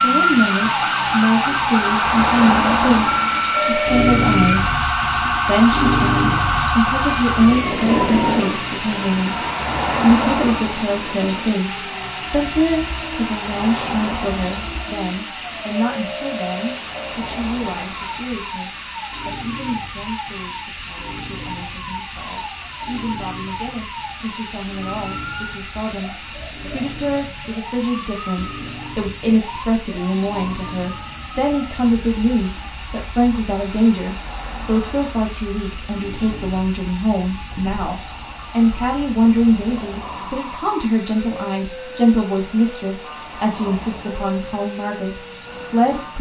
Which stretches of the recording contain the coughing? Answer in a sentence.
You can't hear the coughing here.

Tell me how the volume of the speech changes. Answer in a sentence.
The loudness of the speech goes down, then up.